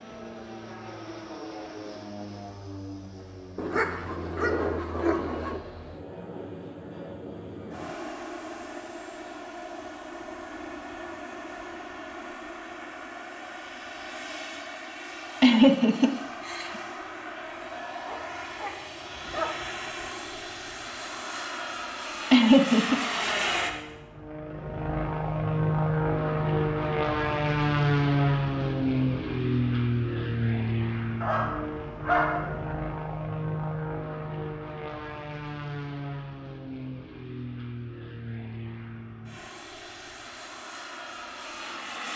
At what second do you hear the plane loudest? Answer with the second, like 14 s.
28 s.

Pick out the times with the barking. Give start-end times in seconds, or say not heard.
3.5-5.6, 18.1-19.8, 31.2-32.8.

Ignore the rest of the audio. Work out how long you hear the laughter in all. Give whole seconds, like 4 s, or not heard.
2 s.